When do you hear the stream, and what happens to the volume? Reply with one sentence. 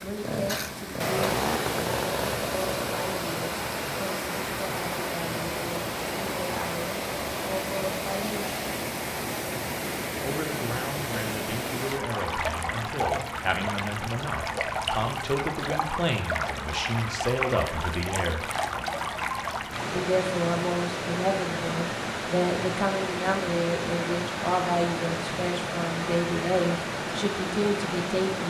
The stream can be heard from 0.0 to 28.4 s, at a steady volume.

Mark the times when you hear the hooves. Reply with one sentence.
You can't hear the hooves here.